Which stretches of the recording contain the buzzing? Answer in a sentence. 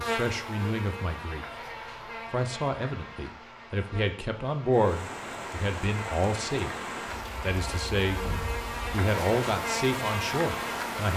You can hear the buzzing from 0.0 to 11.1 s.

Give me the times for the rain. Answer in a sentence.
The rain can be heard from 4.7 to 11.1 s.